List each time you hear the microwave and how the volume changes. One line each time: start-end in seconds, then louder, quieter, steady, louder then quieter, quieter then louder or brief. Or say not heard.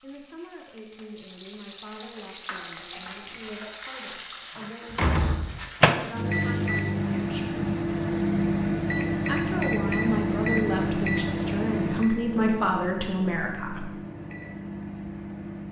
4.5-15.6 quieter.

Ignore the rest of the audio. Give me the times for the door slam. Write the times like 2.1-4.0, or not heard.
4.9-5.7.